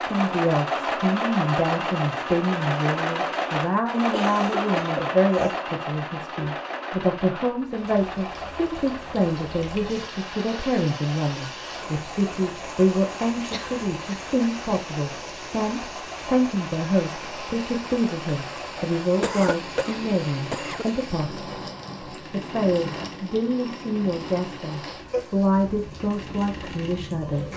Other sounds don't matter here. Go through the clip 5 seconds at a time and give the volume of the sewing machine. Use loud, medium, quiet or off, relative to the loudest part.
loud, medium, quiet, quiet, quiet, quiet.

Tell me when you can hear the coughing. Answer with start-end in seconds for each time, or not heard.
4.1-5.5, 13.5-14.2, 19.2-20.9.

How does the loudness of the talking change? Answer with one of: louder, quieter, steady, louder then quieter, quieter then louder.
steady.